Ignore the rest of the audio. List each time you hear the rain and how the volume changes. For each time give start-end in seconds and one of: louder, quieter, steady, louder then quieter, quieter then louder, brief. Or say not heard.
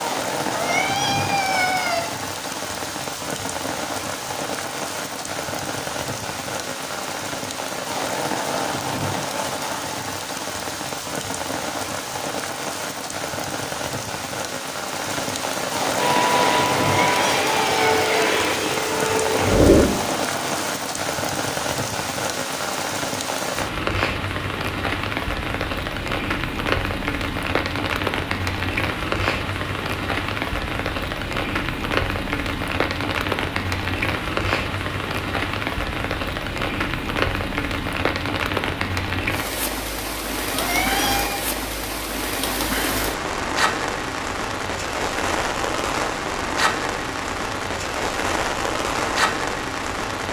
0.0-50.2 steady.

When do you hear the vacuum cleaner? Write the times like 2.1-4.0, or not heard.
15.9-20.7.